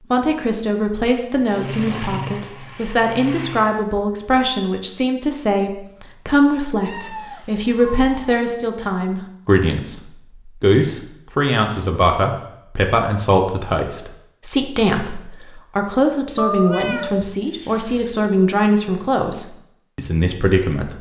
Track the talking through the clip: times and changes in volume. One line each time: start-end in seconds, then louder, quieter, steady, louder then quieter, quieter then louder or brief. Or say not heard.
0.1-20.9 steady.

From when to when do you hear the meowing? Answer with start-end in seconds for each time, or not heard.
6.8-8.3, 16.4-18.3.